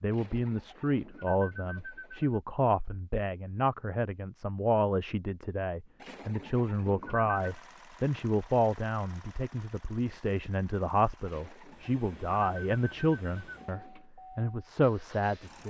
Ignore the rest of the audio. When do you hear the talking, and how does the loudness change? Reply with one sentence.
The talking can be heard from 0.0 to 15.6 s, at a steady volume.